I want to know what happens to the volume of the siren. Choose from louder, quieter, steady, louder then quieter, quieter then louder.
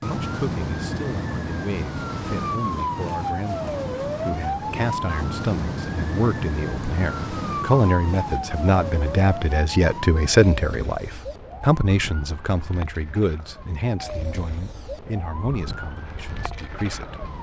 quieter.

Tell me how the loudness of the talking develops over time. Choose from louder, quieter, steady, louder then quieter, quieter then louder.
louder then quieter.